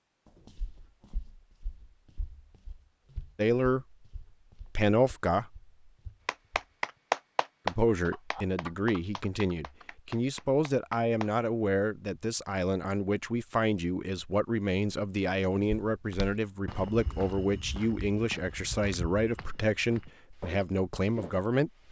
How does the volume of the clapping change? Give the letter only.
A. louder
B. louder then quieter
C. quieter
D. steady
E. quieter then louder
E.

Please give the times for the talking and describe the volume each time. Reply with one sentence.
You can hear the talking briefly from 3.4 to 3.9 s; briefly from 4.8 to 5.7 s; and from 7.7 to 21.7 s, at a steady volume.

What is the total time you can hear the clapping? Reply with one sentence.
You can hear the clapping for 5 seconds altogether.